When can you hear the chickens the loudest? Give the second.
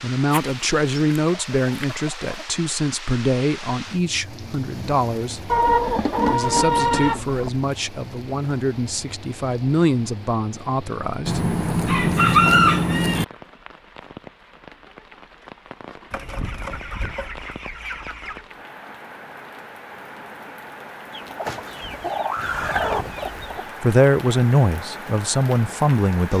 13 s.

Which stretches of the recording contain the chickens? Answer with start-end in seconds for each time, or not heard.
0.3-2.5, 5.5-7.5, 11.2-13.2, 16.1-18.4, 21.1-23.6.